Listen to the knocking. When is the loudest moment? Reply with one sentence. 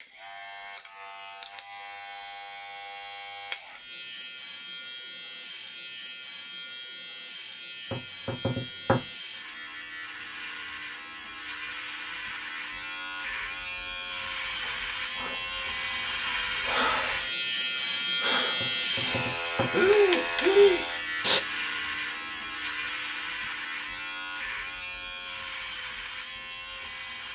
The volume of the knocking peaks at 9 seconds.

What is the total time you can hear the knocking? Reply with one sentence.
You can hear the knocking for 2 seconds altogether.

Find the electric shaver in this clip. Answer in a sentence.
You can hear the electric shaver from 0.0 to 27.2 s.